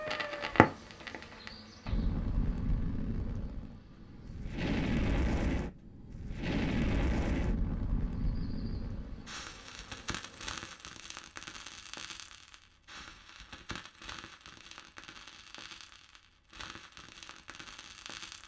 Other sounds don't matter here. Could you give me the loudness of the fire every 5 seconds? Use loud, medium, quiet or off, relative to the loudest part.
loud, loud, medium, quiet.